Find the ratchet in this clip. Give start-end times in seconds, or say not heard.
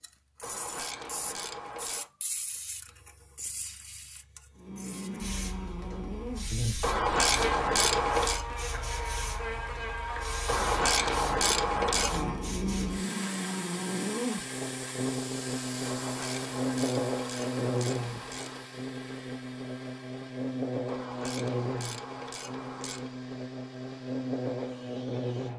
0.4-2.1, 6.8-8.4, 10.4-12.3, 15.8-18.6, 20.9-23.1.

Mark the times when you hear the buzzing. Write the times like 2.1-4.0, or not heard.
4.5-25.5.